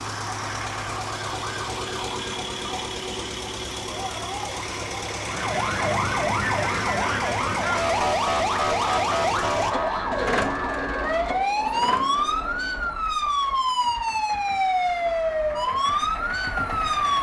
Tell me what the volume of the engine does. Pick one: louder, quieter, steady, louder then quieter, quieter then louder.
quieter.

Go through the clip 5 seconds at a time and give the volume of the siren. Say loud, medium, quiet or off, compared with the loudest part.
quiet, loud, loud, loud.